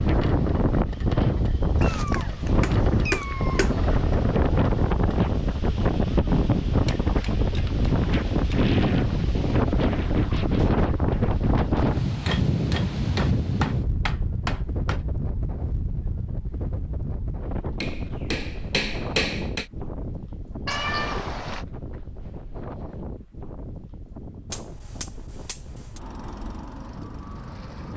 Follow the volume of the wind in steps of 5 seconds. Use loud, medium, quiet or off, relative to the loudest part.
loud, loud, loud, medium, quiet, quiet.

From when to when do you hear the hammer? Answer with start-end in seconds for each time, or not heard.
2.1-3.8, 6.7-8.6, 12.2-15.0, 17.8-19.6, 24.5-26.0.